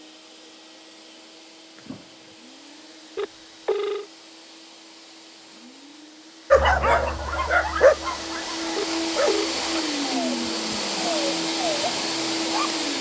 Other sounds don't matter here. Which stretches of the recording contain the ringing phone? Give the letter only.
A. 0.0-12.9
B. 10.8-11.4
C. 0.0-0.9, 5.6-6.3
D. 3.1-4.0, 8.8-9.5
D.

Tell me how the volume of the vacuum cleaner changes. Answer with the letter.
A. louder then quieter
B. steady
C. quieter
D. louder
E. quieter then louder
D.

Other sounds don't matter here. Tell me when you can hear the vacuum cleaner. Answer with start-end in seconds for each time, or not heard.
0.0-12.9.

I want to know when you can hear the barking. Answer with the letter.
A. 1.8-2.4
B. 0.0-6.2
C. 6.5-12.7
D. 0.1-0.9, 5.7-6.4
C.